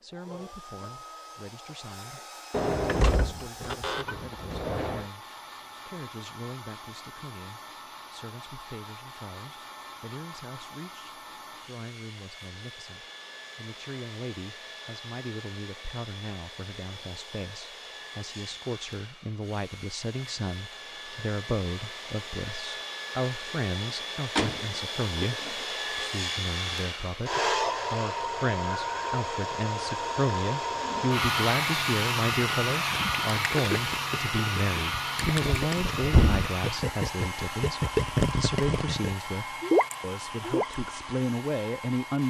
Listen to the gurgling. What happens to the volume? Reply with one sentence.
The volume of the gurgling goes up.